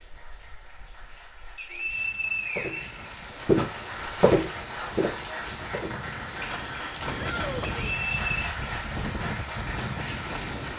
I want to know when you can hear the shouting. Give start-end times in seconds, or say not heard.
7.2-8.1.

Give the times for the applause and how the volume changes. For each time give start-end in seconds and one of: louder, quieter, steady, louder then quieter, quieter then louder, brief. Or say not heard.
0.0-10.7 louder.